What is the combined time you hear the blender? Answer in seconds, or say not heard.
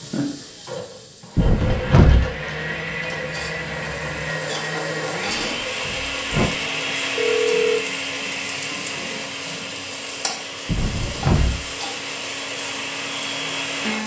14 s.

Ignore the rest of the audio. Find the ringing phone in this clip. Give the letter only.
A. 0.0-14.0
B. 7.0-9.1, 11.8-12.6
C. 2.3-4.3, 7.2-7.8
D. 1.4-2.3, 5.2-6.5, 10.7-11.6
C.